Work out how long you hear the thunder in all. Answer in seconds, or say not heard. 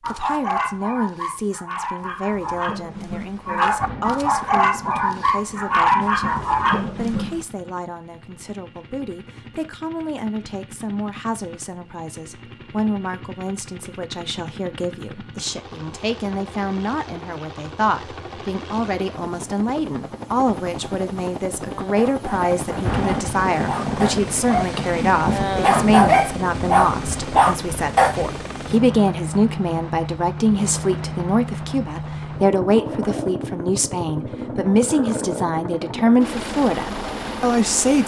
7 s.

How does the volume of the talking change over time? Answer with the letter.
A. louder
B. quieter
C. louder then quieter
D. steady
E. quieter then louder
A.